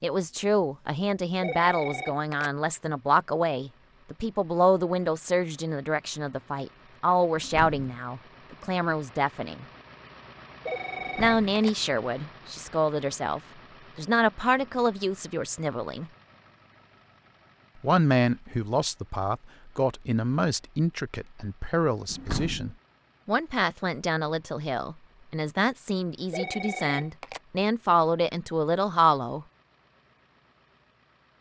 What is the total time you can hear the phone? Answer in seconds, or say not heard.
3 s.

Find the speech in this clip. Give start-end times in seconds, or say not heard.
0.0-9.7, 11.2-16.1, 17.8-29.4.